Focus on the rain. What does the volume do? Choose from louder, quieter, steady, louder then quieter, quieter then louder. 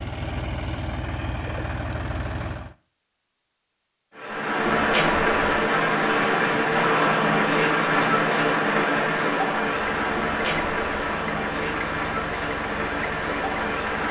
quieter.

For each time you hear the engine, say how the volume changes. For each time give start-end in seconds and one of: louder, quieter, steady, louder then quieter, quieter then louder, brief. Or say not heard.
0.0-2.8 brief
9.8-14.0 steady.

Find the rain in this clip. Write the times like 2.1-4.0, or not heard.
4.2-14.0.